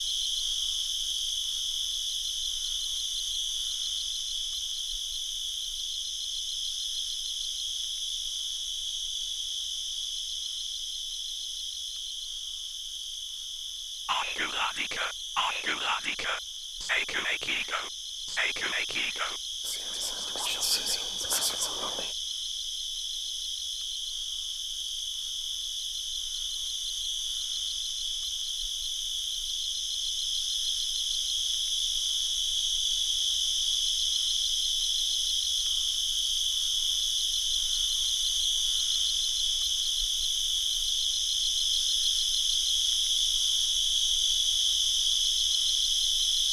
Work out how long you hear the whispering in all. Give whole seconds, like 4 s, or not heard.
8 s.